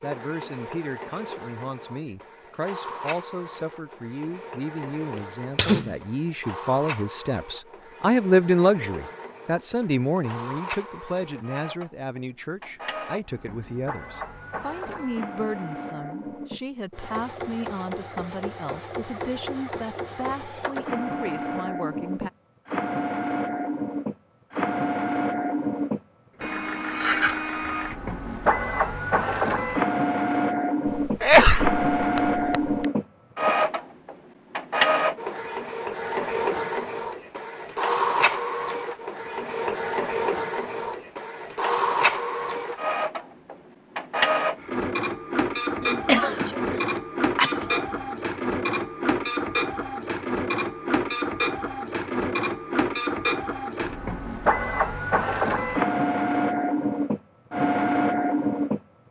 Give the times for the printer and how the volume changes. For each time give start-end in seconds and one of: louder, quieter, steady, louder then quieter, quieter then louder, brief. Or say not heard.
0.0-59.0 louder.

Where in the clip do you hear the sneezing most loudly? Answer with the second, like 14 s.
31 s.